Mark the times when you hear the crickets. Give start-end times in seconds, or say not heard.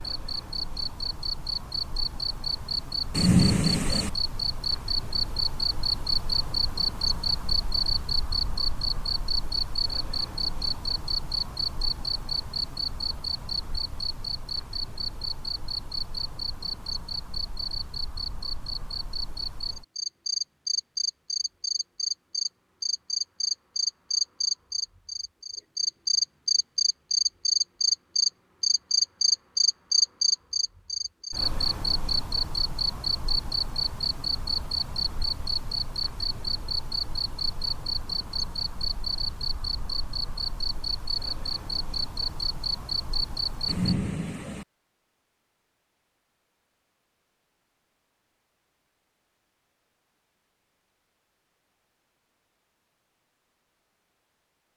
0.0-44.0.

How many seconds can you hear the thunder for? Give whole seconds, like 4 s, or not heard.
2 s.